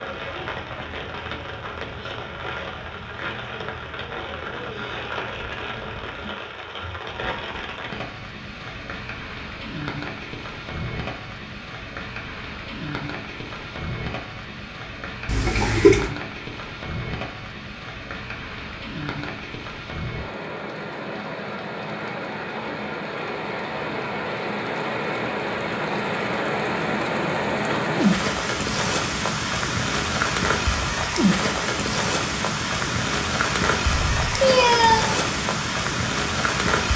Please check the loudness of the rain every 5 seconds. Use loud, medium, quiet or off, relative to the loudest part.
medium, medium, medium, medium, medium, loud, loud, loud.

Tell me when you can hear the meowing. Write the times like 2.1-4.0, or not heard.
15.2-16.1, 33.9-35.0.